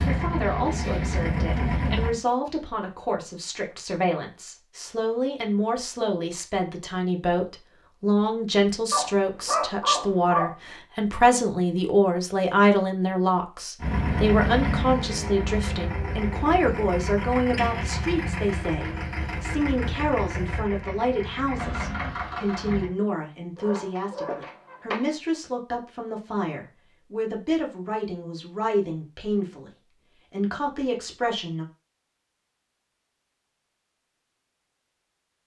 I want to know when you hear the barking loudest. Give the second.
10 s.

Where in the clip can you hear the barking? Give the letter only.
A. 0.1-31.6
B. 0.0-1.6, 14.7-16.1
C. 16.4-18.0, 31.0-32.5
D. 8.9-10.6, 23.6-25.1
D.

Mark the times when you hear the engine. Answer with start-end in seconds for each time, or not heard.
0.0-2.1, 13.8-22.9.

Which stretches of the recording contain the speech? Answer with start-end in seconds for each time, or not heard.
0.1-31.6.